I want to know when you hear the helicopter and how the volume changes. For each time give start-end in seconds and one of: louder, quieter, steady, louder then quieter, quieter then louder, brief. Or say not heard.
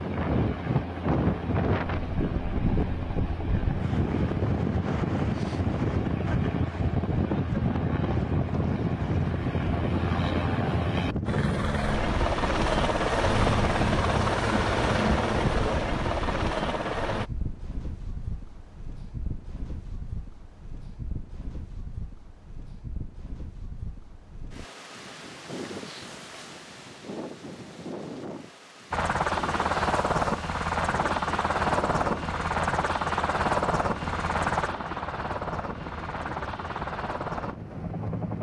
0.0-17.3 louder
28.9-38.3 quieter.